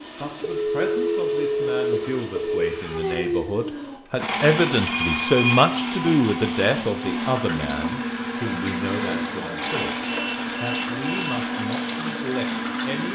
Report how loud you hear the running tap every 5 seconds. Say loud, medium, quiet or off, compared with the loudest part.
off, loud, loud.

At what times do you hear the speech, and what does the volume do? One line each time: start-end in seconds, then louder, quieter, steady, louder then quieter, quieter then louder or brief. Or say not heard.
0.1-13.1 louder then quieter.